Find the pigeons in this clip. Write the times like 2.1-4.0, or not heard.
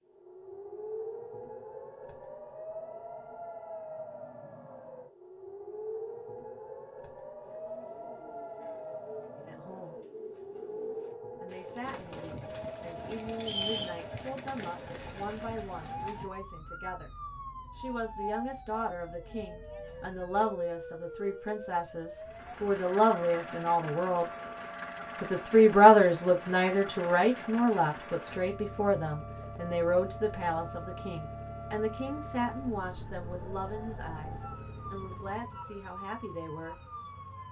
7.4-16.3.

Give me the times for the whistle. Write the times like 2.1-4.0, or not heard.
13.4-14.0.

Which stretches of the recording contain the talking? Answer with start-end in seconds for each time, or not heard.
9.3-9.9, 11.4-17.1, 17.8-24.2, 25.2-36.8.